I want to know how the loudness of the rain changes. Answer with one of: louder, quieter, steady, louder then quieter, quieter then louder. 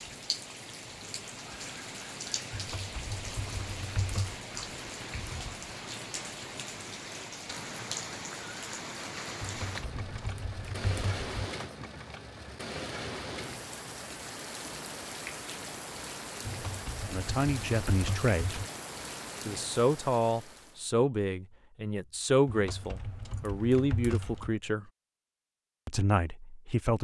steady.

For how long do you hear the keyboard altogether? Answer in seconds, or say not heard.
8 s.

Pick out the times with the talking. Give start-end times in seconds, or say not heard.
17.1-18.6, 19.4-24.9, 25.9-26.9.